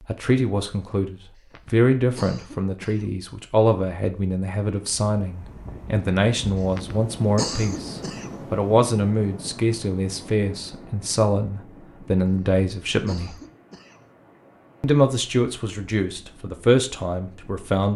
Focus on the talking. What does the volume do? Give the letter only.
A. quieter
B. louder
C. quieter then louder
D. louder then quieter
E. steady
E.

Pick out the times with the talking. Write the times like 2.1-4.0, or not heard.
0.1-13.4, 14.8-17.9.